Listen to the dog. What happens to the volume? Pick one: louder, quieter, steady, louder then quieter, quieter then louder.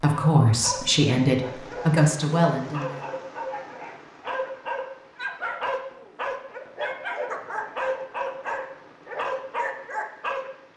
louder.